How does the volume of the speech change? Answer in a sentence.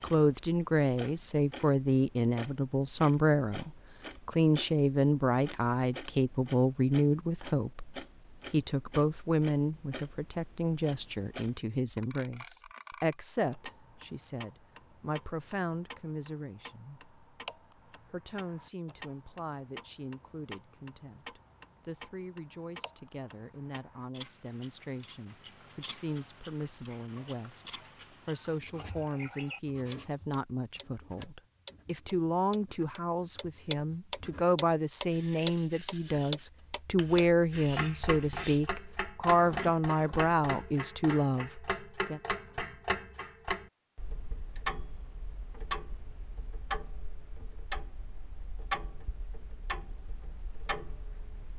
The loudness of the speech goes down, then up.